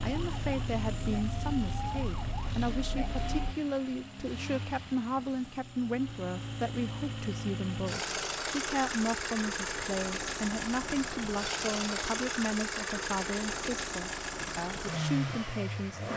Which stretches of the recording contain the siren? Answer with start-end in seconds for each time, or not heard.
0.0-3.5.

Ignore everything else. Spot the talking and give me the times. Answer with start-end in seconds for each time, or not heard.
0.0-16.1.